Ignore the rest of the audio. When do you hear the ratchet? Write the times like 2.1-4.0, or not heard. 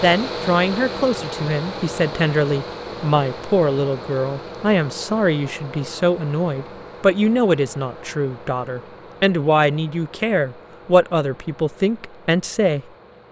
not heard.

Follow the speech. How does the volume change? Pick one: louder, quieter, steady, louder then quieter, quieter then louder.
steady.